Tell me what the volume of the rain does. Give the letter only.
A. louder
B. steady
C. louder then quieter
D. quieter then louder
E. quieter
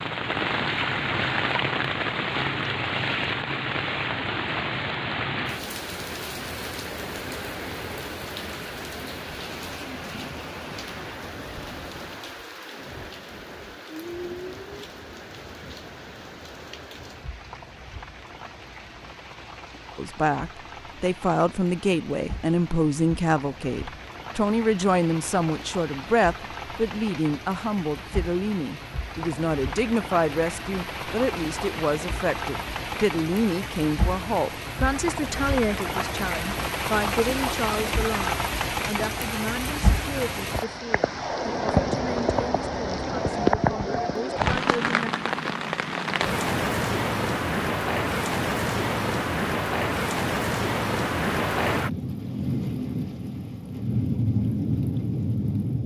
D.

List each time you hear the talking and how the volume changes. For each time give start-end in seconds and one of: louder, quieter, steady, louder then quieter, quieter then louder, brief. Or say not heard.
19.9-45.1 quieter.